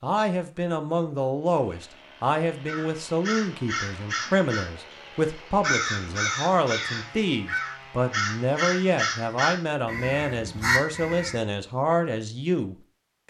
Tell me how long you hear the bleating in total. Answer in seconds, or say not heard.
not heard.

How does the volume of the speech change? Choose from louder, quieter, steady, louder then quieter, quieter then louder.
steady.